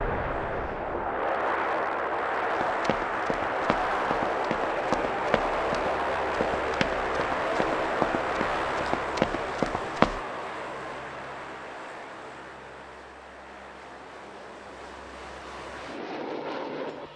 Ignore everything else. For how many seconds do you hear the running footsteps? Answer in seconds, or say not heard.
8 s.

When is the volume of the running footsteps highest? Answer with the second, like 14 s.
10 s.